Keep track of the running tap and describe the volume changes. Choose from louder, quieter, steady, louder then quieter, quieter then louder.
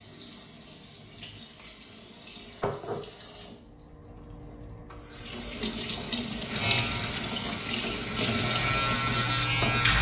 louder.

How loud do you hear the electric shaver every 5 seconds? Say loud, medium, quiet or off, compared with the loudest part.
off, loud.